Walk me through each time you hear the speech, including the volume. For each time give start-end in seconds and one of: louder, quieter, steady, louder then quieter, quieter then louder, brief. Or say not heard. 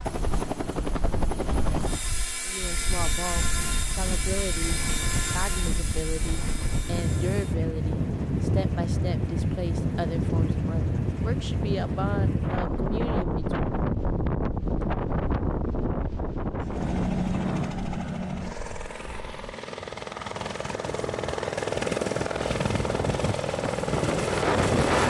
2.5-13.7 steady.